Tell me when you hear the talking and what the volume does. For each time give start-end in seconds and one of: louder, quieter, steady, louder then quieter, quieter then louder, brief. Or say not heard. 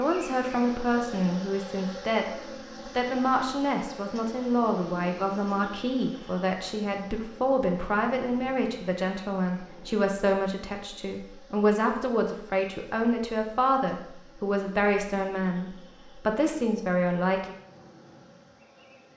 0.0-2.3 brief
3.0-17.5 steady.